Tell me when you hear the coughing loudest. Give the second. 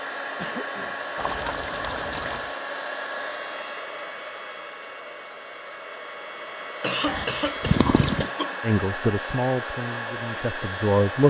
7 s.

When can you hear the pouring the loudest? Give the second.
8 s.